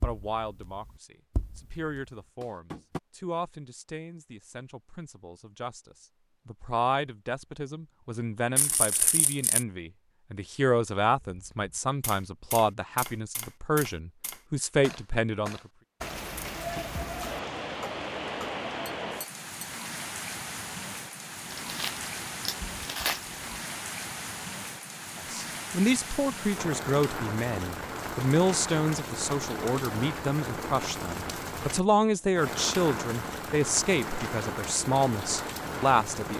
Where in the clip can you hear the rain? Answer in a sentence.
The rain can be heard from 16.0 to 36.3 s.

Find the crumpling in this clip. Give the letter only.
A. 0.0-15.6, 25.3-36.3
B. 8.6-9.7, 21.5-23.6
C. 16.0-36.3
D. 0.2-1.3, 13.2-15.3
B.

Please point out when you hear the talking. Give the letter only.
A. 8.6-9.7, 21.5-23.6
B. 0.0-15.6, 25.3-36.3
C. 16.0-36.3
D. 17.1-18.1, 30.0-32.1
B.